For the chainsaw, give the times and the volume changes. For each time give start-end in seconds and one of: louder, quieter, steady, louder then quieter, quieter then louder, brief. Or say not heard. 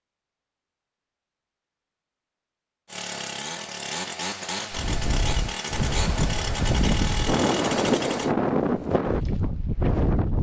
2.9-8.3 steady.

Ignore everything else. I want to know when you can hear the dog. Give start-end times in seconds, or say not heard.
not heard.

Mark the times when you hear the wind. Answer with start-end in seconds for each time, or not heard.
4.7-10.3.